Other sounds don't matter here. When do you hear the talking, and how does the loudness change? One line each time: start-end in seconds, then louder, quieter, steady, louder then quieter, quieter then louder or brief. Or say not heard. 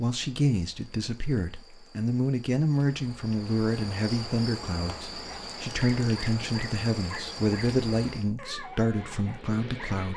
0.0-10.1 steady.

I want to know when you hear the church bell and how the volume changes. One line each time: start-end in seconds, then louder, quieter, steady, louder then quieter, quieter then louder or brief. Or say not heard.
not heard.